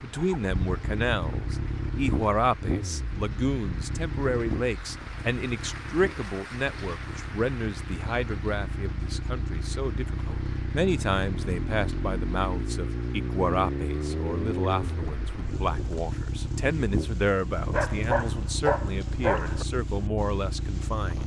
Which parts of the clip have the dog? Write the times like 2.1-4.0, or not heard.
17.6-19.6.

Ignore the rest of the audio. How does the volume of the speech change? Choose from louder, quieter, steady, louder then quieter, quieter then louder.
steady.